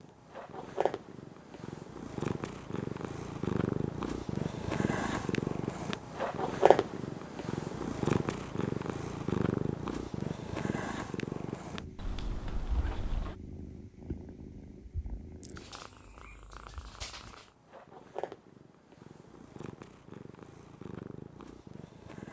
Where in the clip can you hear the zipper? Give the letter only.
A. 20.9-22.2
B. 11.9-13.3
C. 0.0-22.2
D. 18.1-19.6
B.